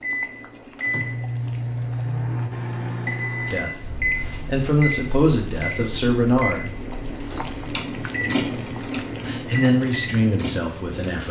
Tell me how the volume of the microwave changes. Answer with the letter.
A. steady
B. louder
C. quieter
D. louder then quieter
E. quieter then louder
C.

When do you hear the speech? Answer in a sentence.
The speech can be heard from 3.5 to 6.7 s and from 9.2 to 11.2 s.